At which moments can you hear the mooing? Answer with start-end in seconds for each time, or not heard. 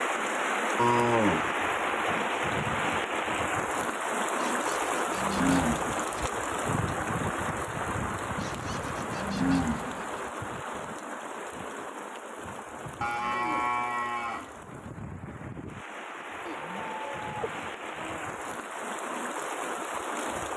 0.8-1.5, 4.4-6.3, 8.4-10.1, 13.0-14.6, 16.4-18.3.